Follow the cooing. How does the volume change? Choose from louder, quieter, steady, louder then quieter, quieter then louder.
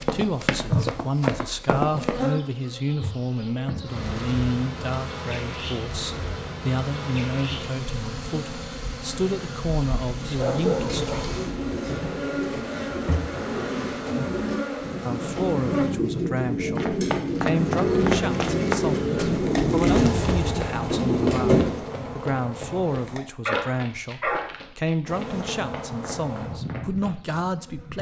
louder.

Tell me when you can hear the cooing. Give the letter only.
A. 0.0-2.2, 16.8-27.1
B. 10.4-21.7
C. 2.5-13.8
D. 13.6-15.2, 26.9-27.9
B.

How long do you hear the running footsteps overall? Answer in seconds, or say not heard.
13 s.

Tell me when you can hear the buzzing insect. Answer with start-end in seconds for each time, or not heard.
0.1-15.9, 17.5-23.2, 25.1-27.9.